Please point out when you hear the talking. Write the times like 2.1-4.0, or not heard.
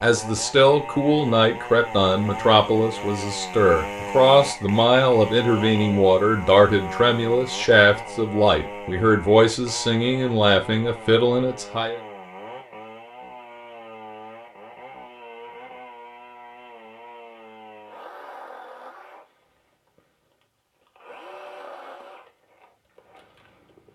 0.0-12.0.